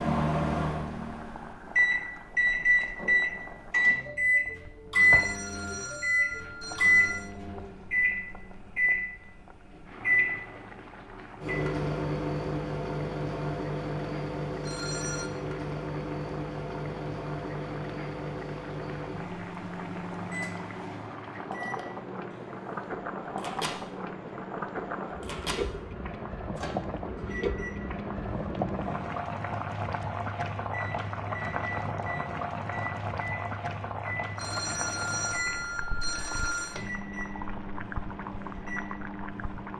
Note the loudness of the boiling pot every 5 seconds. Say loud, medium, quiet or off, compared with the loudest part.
quiet, medium, medium, medium, loud, loud, loud, medium.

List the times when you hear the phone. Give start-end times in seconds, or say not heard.
5.0-7.3, 14.6-15.3, 34.4-36.8.